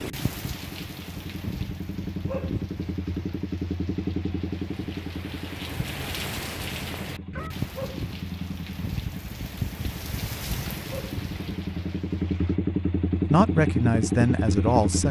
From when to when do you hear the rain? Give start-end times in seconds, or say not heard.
0.0-12.6.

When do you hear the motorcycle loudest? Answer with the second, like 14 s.
14 s.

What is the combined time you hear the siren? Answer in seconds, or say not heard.
not heard.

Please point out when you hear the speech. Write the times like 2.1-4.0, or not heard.
13.3-15.0.